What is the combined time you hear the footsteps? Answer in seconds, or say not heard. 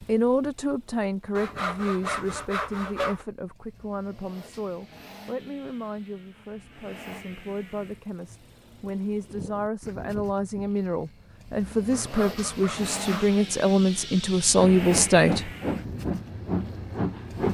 not heard.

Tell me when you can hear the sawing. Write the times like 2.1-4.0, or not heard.
1.4-3.2, 11.9-13.4.